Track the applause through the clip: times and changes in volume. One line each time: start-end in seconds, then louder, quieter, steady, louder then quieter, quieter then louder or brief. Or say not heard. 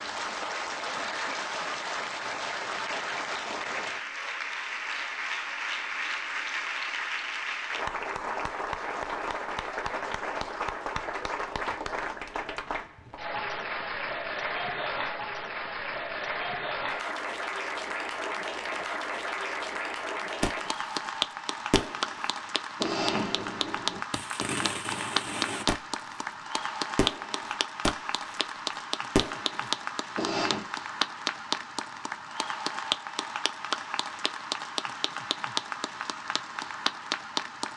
0.0-37.7 steady.